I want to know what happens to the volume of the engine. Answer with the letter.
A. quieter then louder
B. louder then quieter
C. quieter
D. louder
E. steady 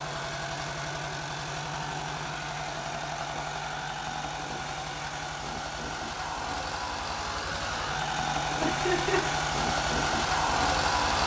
D.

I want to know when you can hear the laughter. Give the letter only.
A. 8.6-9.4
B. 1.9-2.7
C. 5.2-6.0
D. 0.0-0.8
A.